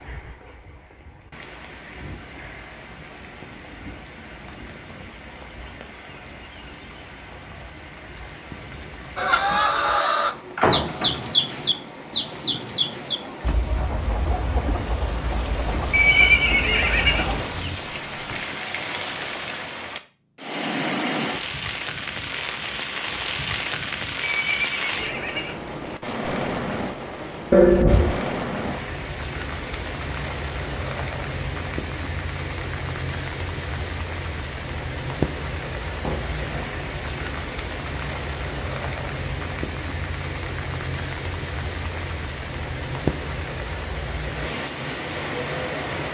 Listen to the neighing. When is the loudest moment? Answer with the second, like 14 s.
16 s.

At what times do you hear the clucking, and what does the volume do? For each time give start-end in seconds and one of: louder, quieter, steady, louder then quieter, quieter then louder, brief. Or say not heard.
9.2-17.8 quieter.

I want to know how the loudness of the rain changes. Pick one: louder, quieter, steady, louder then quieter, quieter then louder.
louder.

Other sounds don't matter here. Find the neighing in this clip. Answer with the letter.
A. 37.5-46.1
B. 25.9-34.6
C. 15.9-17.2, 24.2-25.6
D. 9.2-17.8
C.